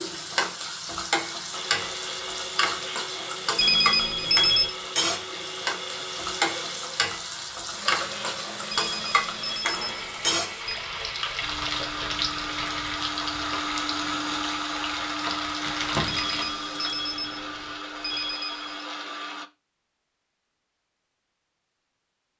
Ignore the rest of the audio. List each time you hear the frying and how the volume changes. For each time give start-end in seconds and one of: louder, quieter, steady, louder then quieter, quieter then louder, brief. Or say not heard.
0.0-17.1 steady.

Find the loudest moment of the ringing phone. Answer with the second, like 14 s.
4 s.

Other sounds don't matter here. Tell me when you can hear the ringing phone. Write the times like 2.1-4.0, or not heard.
3.5-4.8, 8.7-10.8, 16.1-18.9.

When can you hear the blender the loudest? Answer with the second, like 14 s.
14 s.